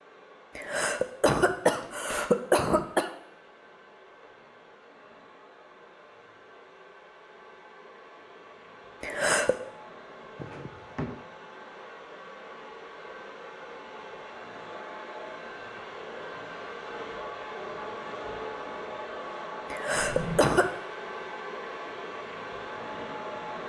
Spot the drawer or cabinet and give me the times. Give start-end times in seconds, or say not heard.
1.6-2.4, 10.3-11.2, 19.9-20.4.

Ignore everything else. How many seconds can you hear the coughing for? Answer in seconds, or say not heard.
4 s.